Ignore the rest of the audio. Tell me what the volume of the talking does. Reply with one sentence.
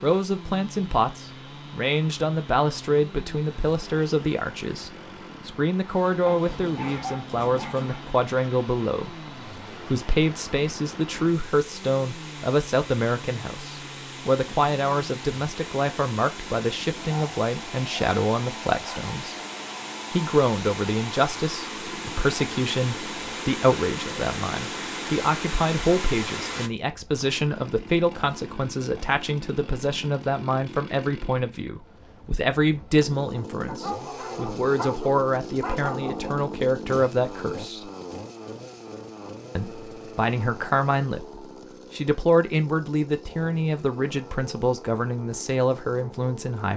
The volume of the talking stays about the same.